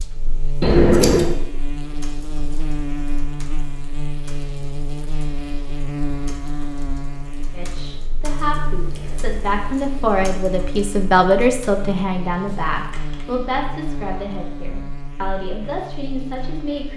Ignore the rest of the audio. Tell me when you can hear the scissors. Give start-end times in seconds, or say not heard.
0.6-1.4.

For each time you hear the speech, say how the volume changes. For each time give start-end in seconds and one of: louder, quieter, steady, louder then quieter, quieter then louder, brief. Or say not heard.
7.5-16.9 louder then quieter.